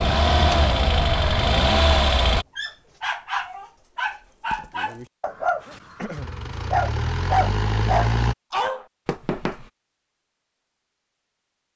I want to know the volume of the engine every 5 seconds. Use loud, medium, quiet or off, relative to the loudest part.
loud, medium, off.